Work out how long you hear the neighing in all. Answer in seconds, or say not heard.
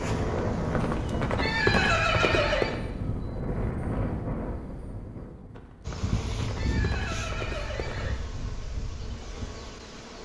5 s.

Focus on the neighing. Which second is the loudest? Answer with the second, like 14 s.
2 s.